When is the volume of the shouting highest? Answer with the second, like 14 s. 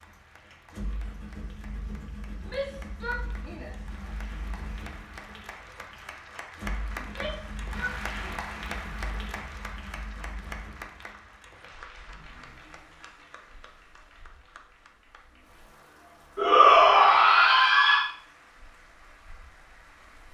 17 s.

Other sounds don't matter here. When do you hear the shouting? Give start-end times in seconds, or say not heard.
2.5-3.9, 7.0-8.5, 16.4-18.1.